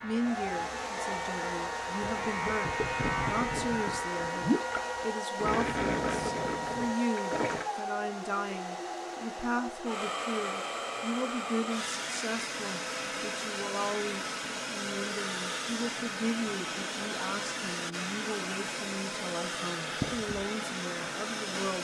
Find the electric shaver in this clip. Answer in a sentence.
The electric shaver can be heard from 0.0 to 5.2 s.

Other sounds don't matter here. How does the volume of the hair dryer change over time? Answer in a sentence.
The volume of the hair dryer stays about the same.